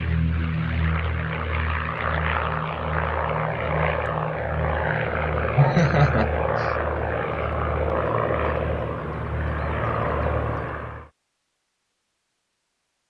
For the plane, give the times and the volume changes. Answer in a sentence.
You can hear the plane from 0.0 to 11.1 s, at a steady volume.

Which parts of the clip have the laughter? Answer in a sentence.
The laughter can be heard from 5.5 to 6.7 s.